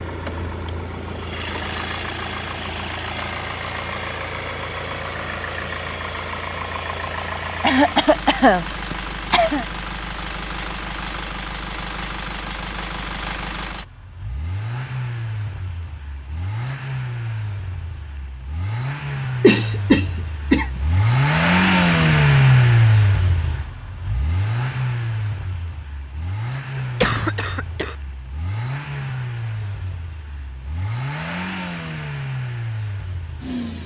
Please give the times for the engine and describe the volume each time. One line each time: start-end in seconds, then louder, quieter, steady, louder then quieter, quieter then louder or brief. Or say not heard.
0.0-33.8 louder then quieter.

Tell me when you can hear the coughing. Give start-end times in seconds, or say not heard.
7.6-9.7, 19.4-20.8, 26.8-27.9.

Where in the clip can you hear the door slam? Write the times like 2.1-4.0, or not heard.
not heard.